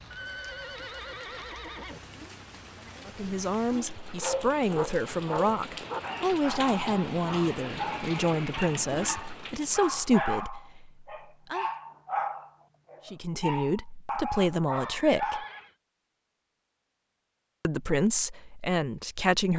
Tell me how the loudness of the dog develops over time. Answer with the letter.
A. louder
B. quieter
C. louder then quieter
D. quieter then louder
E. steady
E.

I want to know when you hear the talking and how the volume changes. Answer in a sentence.
You can hear the talking from 3.0 to 11.7 s, at a steady volume; briefly from 13.1 to 15.4 s; and briefly from 17.6 to 19.5 s.